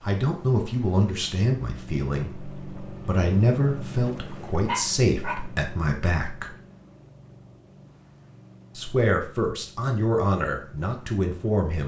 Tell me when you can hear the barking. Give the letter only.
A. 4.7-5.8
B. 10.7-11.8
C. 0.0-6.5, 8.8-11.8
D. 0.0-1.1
A.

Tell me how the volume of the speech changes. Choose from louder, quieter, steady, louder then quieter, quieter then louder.
steady.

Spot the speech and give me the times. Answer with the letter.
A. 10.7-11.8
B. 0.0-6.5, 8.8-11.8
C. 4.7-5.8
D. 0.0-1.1
B.